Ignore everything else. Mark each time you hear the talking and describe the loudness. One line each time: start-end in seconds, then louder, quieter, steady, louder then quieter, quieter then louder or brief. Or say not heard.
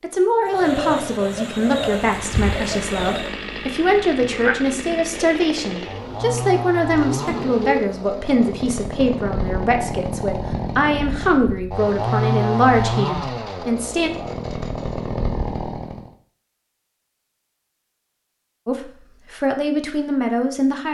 0.0-14.1 steady
18.6-20.8 brief.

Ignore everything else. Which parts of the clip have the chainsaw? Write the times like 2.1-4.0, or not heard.
2.0-16.1.